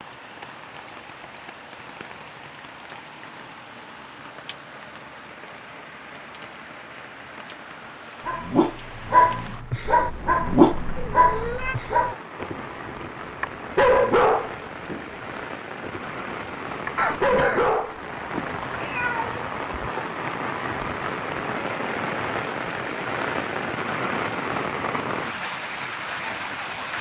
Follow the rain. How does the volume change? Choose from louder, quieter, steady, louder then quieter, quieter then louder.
louder.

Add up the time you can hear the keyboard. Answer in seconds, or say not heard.
not heard.